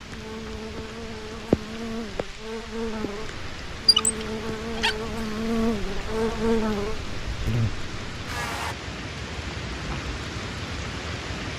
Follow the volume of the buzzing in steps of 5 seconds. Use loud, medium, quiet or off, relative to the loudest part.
medium, loud, off.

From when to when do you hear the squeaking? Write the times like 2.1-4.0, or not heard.
3.9-5.0.